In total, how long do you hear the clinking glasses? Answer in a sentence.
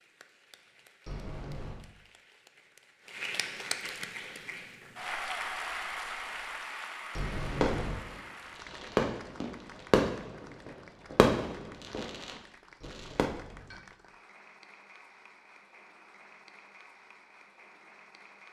The clinking glasses can be heard for 3 seconds in total.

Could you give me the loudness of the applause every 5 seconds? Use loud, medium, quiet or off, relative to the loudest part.
loud, loud, quiet, quiet.